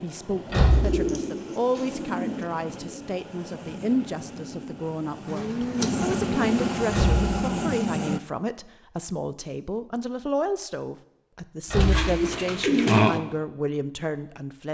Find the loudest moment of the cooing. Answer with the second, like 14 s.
13 s.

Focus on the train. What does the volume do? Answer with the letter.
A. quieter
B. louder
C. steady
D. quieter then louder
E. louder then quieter
B.